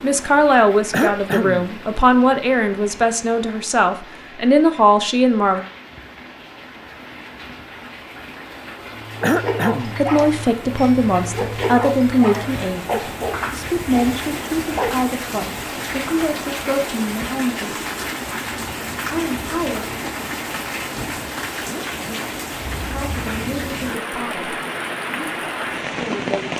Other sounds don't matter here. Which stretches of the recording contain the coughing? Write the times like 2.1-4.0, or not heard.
0.9-1.7, 9.2-10.0, 21.6-22.4.